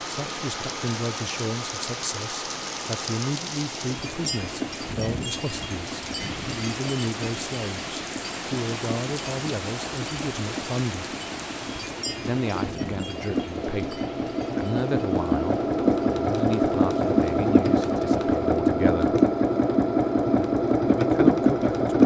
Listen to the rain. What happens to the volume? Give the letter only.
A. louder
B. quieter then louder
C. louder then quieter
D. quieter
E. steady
D.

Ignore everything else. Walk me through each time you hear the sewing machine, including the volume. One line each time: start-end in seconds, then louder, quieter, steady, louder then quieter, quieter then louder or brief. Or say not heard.
0.0-22.0 louder.